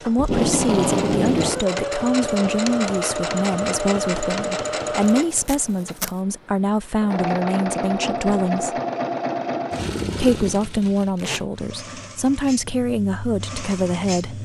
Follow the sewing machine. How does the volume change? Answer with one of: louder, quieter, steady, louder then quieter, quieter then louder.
quieter.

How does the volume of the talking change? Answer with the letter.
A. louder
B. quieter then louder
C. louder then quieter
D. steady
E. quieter
D.